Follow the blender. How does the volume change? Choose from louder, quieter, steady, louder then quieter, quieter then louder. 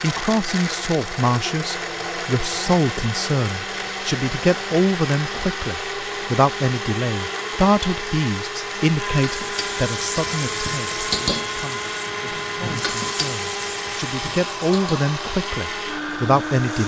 steady.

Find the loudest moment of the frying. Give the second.
11 s.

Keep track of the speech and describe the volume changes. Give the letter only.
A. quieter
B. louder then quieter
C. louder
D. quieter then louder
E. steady
D.